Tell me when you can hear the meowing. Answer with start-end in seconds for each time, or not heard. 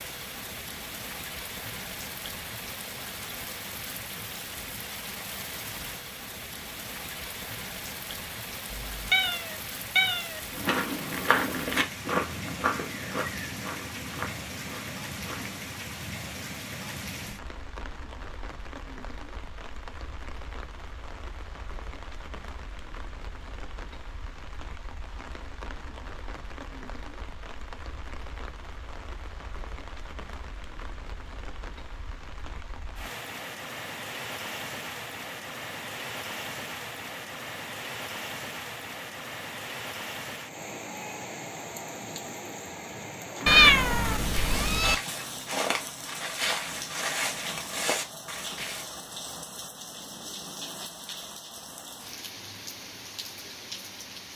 8.7-10.4, 43.5-45.0.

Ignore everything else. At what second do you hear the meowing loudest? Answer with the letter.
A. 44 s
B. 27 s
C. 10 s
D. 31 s
A.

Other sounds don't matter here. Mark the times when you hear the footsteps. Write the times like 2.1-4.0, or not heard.
10.6-15.8, 43.5-48.9.